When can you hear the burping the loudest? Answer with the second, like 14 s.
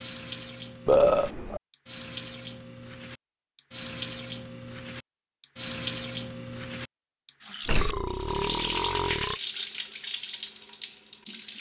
1 s.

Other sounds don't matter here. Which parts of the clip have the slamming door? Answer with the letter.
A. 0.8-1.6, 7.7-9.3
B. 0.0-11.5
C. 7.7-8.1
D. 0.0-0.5
C.